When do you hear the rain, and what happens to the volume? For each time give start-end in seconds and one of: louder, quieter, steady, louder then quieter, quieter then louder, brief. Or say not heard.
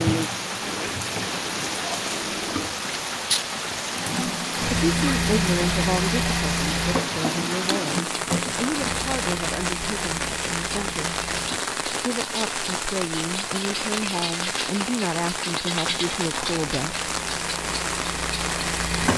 0.0-19.1 steady.